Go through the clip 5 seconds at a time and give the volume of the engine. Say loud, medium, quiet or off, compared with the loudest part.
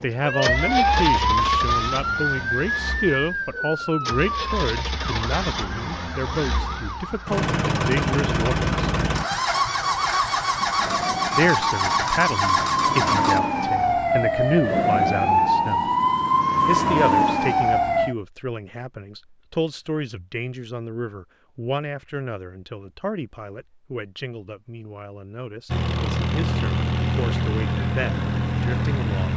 medium, loud, loud, off, off, loud.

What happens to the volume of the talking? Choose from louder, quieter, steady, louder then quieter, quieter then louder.
quieter.